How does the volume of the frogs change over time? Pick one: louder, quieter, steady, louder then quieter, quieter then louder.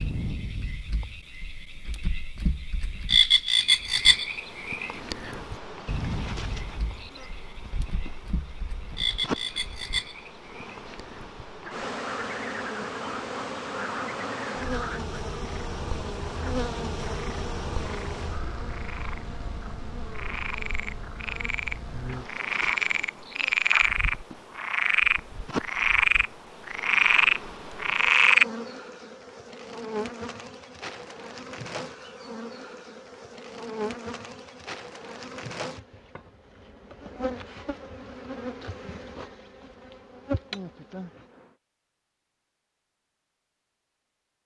quieter then louder.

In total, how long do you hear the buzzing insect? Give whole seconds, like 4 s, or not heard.
38 s.